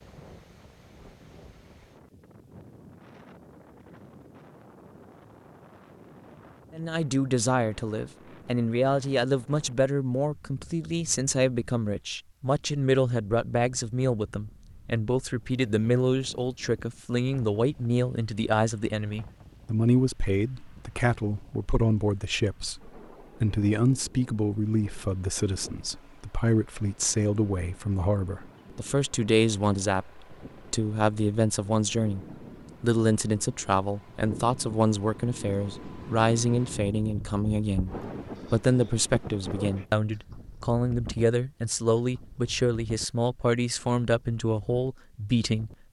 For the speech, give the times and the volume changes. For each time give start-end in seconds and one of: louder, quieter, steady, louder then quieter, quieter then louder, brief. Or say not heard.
6.8-45.7 steady.